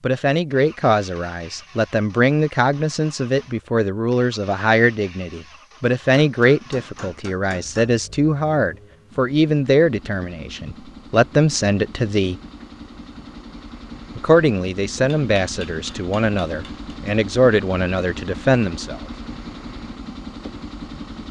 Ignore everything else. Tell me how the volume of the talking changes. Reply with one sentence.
The volume of the talking stays about the same.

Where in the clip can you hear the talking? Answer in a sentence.
You can hear the talking from 0.0 to 12.3 s and from 14.2 to 19.0 s.